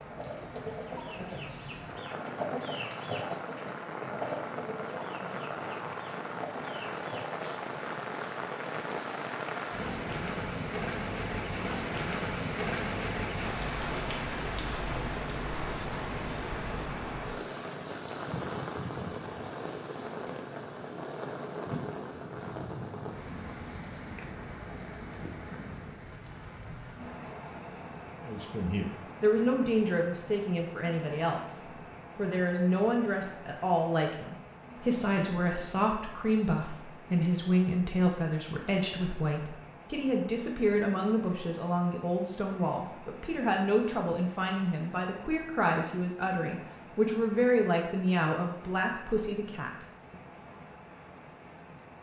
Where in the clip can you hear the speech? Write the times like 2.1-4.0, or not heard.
28.2-50.1.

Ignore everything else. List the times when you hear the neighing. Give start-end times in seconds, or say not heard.
not heard.